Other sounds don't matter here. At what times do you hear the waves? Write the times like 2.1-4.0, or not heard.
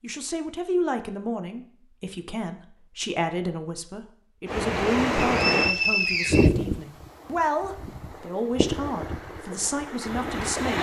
4.5-10.7.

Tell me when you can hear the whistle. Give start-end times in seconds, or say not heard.
5.3-6.5.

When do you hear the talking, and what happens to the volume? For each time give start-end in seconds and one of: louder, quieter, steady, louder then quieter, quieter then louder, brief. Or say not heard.
0.0-10.7 steady.